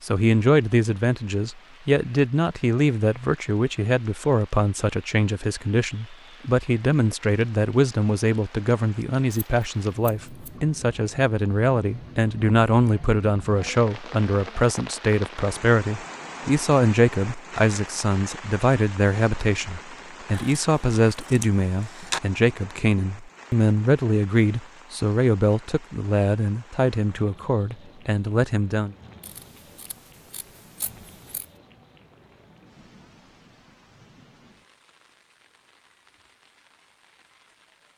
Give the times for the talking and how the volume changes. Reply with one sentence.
You can hear the talking from 0.0 to 28.9 s, at a steady volume.